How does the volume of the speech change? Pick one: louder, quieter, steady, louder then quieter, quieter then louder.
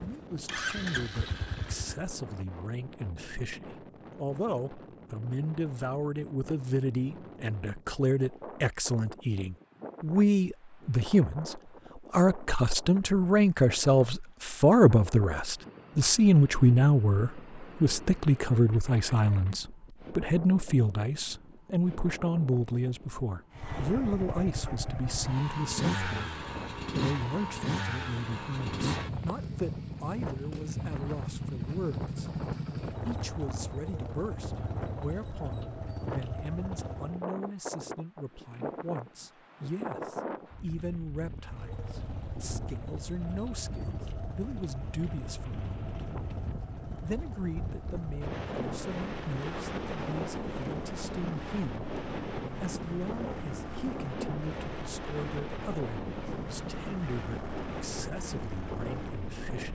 louder then quieter.